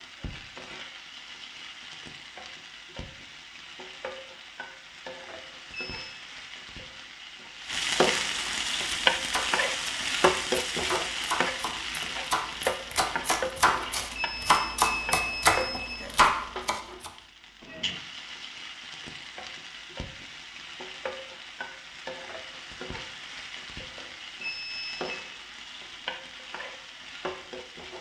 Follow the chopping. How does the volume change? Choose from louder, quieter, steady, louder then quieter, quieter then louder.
louder.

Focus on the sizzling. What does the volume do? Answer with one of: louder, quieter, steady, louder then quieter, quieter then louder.
louder then quieter.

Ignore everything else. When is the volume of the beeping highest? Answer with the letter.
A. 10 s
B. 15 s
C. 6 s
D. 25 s
B.